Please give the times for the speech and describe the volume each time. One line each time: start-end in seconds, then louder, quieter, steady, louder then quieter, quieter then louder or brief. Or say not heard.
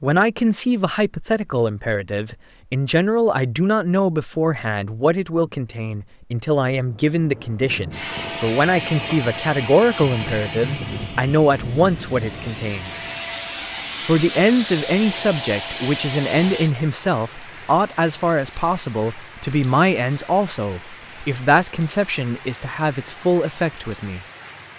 0.0-13.0 steady
14.1-24.2 steady.